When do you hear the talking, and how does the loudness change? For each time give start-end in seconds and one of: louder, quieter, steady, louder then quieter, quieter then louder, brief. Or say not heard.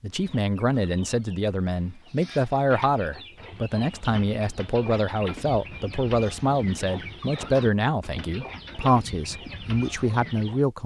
0.0-10.8 steady.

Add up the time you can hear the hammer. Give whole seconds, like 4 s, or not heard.
not heard.